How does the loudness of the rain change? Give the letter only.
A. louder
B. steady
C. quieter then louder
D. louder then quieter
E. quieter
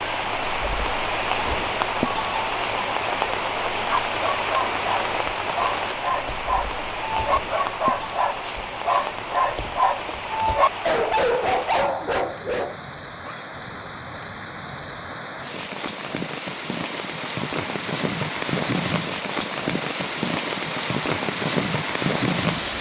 C.